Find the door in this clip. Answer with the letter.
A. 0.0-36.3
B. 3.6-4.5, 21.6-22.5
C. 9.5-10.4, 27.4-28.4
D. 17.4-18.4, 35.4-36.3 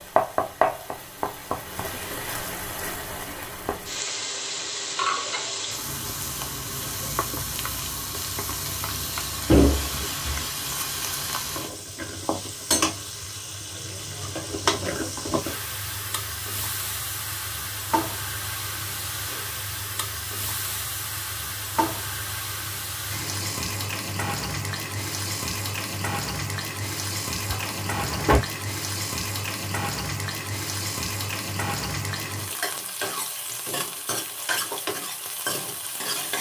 C.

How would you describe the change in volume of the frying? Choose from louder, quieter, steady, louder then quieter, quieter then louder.
steady.